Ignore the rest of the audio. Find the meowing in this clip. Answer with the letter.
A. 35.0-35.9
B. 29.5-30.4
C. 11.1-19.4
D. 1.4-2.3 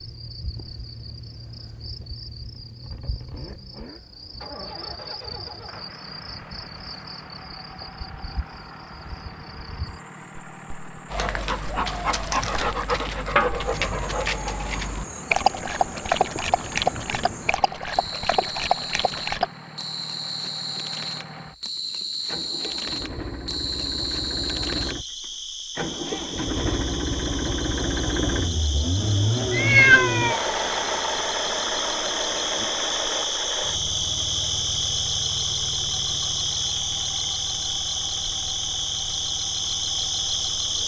B.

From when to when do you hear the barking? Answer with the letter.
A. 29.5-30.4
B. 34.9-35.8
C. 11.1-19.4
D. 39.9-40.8
C.